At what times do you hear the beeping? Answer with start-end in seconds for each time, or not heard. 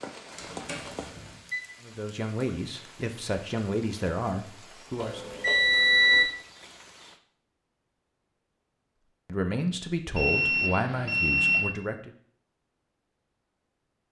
0.3-1.6, 5.0-6.2, 10.2-11.7.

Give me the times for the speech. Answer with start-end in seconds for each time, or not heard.
1.8-5.3, 9.2-12.1.